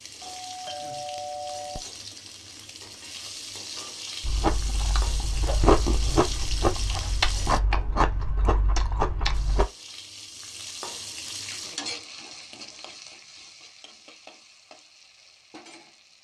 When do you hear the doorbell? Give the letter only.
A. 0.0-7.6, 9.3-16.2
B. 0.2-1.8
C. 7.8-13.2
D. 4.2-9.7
B.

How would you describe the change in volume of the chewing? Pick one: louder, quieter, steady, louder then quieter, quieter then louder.
louder then quieter.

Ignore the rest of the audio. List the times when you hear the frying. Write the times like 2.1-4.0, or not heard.
0.0-7.6, 9.3-16.2.